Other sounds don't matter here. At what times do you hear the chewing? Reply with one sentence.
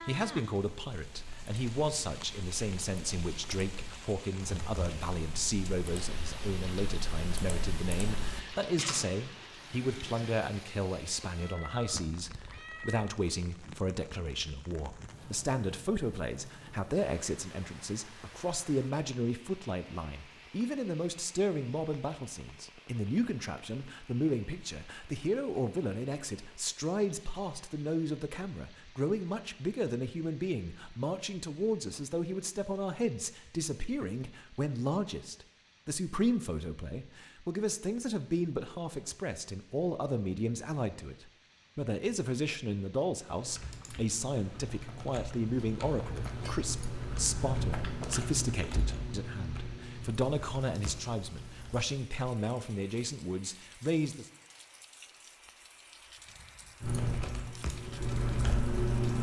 You can't hear the chewing here.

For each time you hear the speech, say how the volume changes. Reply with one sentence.
You can hear the speech from 0.1 to 54.3 s, at a steady volume.